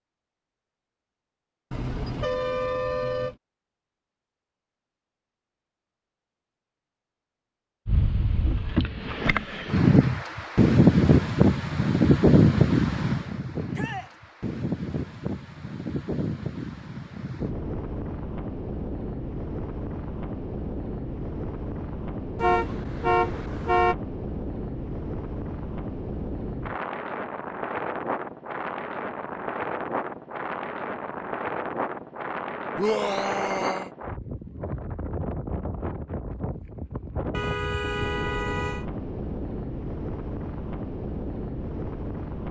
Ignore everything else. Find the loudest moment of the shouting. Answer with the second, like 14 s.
33 s.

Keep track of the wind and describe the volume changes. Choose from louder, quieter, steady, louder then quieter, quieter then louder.
quieter.